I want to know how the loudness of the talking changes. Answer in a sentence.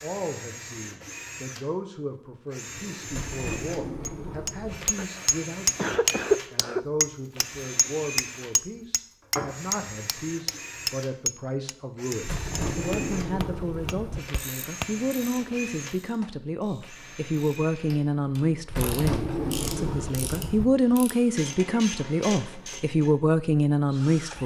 The loudness of the talking goes up.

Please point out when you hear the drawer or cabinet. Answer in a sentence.
The drawer or cabinet can be heard from 3.0 to 4.9 s, from 12.2 to 14.2 s and from 18.6 to 20.6 s.